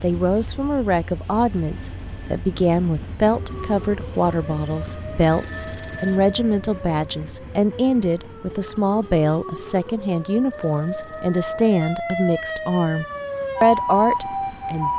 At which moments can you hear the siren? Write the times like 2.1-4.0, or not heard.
3.3-14.9.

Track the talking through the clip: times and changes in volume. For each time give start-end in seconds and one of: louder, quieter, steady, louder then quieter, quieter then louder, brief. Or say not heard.
0.0-14.9 steady.